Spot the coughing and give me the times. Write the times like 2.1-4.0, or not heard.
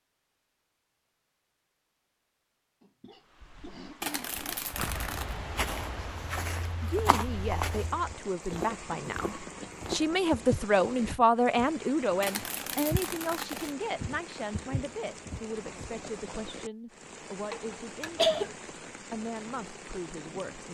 2.8-4.7, 7.9-9.8, 17.5-18.6.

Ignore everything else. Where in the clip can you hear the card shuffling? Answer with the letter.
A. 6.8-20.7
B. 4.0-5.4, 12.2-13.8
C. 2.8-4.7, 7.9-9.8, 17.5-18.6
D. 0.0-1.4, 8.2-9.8
B.